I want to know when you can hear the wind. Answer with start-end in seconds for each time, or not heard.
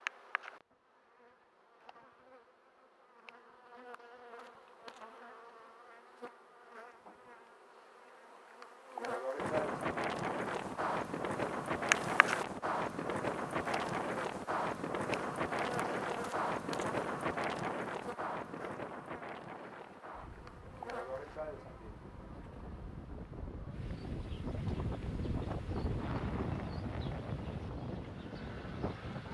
9.3-29.3.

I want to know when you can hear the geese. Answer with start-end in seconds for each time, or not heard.
not heard.